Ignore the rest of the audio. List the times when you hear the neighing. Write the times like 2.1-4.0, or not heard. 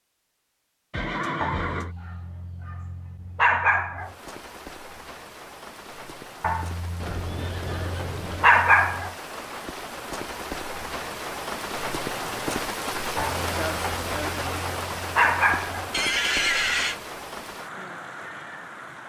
0.9-1.9, 7.0-8.6, 15.9-17.0.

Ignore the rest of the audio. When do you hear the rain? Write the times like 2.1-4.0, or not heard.
4.0-19.0.